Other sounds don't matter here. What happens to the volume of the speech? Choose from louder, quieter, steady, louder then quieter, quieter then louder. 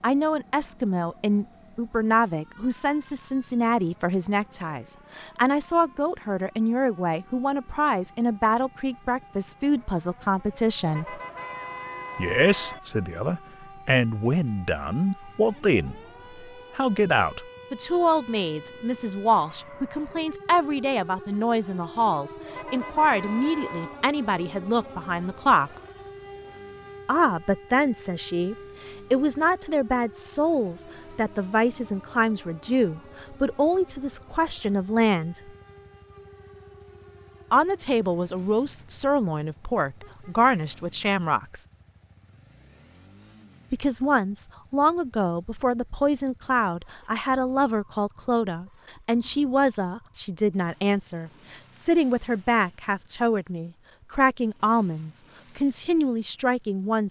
steady.